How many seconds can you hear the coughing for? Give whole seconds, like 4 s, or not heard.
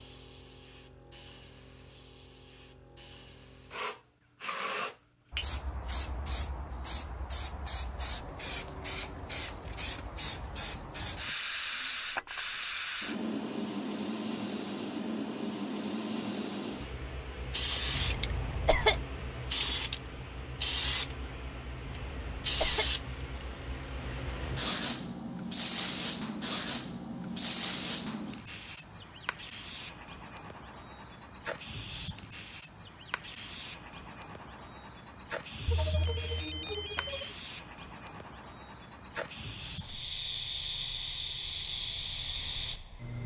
2 s.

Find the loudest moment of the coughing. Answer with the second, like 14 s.
19 s.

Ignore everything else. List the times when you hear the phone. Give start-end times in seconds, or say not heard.
35.6-37.4.